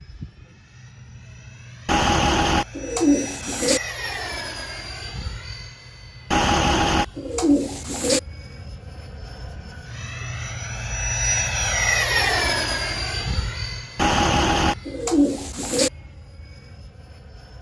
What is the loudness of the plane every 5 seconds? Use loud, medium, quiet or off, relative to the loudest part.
medium, quiet, loud, quiet.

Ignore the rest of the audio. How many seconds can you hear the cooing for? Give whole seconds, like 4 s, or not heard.
6 s.